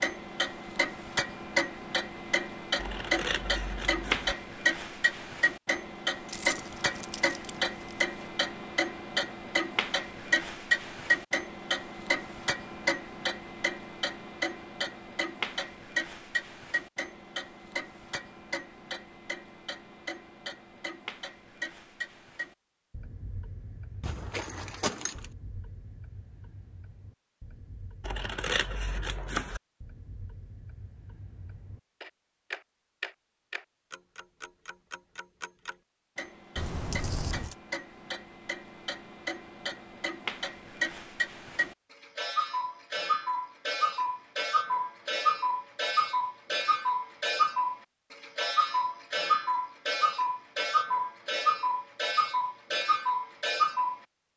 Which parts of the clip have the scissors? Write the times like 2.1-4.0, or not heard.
2.8-4.3, 28.0-29.6.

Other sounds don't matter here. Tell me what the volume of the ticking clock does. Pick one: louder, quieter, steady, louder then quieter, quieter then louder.
quieter then louder.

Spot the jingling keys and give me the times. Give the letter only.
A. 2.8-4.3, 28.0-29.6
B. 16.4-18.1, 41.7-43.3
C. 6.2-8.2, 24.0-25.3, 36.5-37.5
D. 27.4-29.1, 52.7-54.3
C.